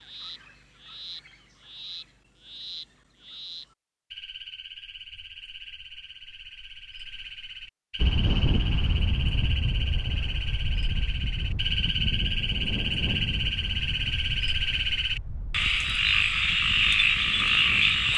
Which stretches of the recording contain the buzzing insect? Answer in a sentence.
You can't hear the buzzing insect here.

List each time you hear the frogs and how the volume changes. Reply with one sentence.
The frogs can be heard from 0.0 to 18.1 s, getting louder.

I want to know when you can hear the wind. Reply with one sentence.
The wind can be heard from 8.0 to 18.1 s.